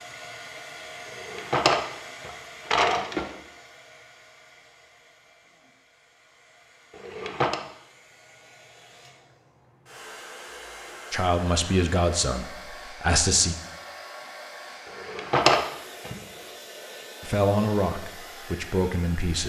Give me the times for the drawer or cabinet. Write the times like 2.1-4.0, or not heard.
1.1-3.3, 6.9-7.6, 14.9-16.1.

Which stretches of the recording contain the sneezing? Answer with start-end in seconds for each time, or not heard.
not heard.